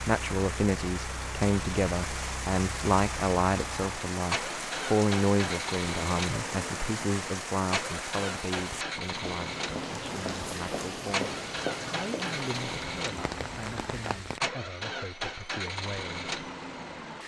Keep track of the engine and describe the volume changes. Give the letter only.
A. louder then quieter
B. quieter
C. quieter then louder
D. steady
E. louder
E.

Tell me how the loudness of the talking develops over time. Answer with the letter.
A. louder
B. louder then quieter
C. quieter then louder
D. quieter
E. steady
D.